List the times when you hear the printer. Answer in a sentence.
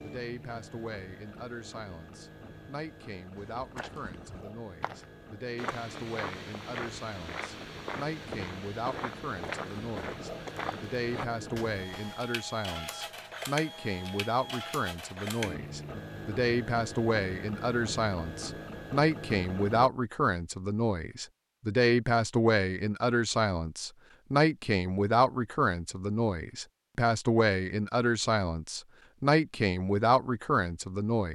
You can hear the printer from 0.0 to 19.9 s.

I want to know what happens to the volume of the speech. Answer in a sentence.
The volume of the speech goes up.